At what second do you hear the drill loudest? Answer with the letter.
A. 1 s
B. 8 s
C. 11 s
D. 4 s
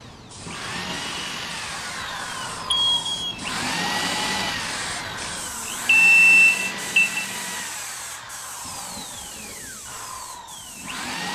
D.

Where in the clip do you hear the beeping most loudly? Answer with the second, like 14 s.
6 s.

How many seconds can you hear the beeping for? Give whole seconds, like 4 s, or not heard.
2 s.